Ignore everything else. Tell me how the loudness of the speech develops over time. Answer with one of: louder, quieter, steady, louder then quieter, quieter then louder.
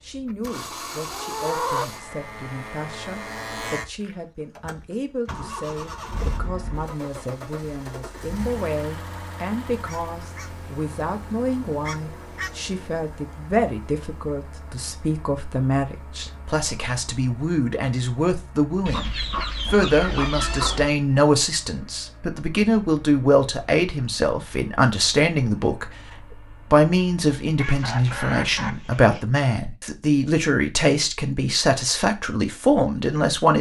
louder.